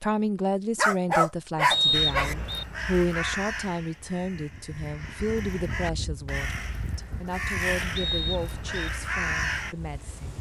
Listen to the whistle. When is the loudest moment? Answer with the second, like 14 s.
2 s.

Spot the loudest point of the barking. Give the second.
1 s.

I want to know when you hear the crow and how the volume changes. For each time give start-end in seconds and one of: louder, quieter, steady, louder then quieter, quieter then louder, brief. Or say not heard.
1.9-9.8 quieter then louder.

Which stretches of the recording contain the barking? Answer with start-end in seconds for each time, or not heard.
0.8-2.4.